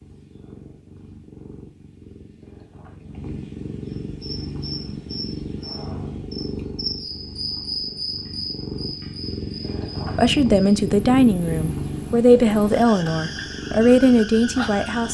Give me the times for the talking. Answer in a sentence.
The talking can be heard from 10.2 to 15.0 s.